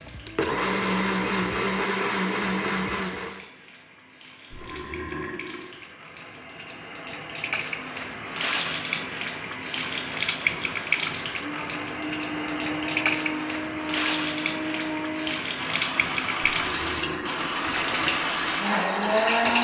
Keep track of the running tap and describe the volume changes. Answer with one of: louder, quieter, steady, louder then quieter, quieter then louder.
louder.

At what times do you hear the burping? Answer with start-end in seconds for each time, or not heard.
4.5-5.7, 16.4-17.4.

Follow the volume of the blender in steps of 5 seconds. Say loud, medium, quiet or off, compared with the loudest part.
loud, off, medium, loud.